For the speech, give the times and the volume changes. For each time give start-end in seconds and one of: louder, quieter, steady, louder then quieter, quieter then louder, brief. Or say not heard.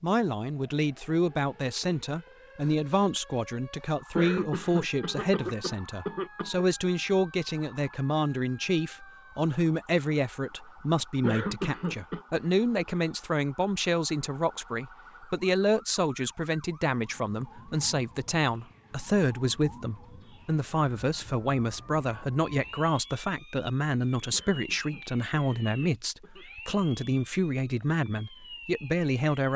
0.0-29.5 steady.